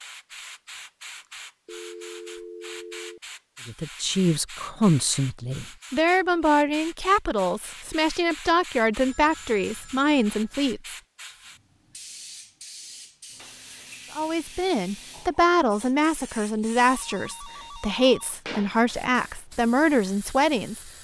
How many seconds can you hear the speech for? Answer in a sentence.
You can hear the speech for 14 seconds altogether.